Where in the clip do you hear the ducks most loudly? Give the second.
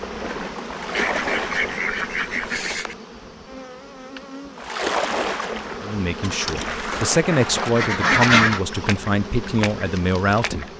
8 s.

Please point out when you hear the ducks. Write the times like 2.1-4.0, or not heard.
0.9-3.0, 6.2-8.6.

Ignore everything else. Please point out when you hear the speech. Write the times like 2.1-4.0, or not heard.
5.8-10.7.